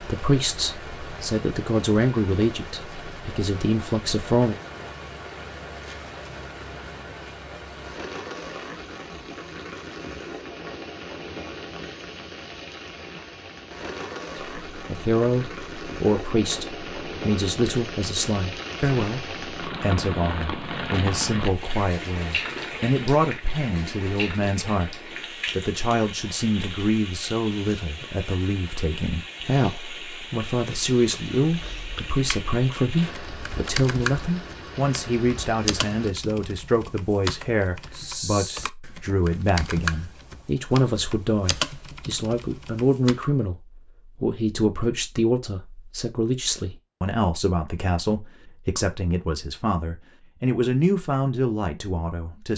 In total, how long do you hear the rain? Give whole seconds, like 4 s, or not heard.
36 s.